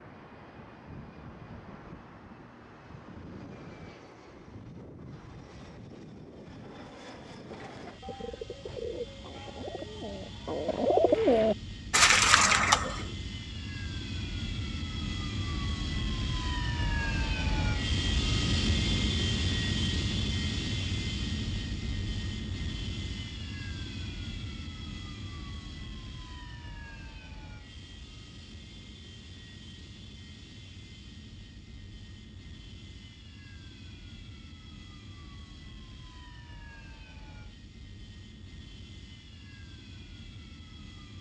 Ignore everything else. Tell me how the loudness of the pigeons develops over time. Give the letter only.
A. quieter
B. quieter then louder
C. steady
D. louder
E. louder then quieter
D.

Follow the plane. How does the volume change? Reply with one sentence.
The loudness of the plane goes up, then down.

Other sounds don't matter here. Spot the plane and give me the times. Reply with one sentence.
The plane can be heard from 0.0 to 41.1 s.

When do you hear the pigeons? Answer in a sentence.
The pigeons can be heard from 7.5 to 13.1 s.